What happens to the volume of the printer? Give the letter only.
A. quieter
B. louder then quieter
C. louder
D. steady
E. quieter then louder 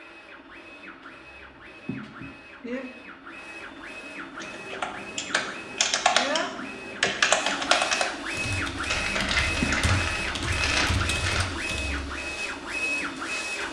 C.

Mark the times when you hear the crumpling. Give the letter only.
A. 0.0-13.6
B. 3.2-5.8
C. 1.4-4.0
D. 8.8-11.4
D.